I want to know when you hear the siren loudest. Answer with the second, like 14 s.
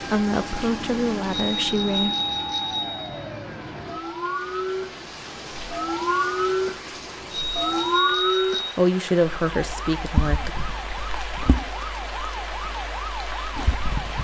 8 s.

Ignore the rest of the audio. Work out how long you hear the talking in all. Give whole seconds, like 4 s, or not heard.
4 s.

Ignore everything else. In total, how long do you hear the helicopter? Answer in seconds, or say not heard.
not heard.